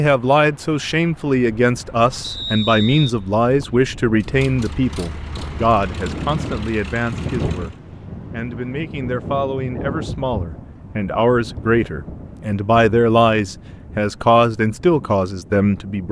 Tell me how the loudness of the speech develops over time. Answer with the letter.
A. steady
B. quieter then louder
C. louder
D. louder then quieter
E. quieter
B.